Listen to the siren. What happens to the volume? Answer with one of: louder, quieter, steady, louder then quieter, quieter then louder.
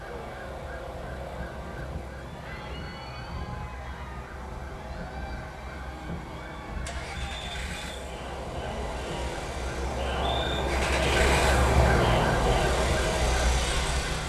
louder.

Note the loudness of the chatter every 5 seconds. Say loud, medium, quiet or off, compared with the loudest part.
quiet, medium, loud.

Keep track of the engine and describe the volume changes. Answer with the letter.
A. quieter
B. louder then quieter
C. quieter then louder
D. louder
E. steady
D.